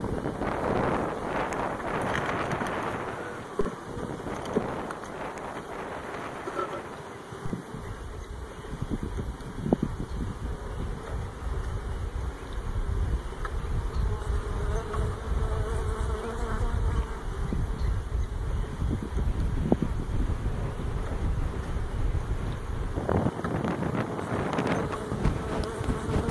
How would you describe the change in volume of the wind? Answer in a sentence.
The loudness of the wind goes down, then up.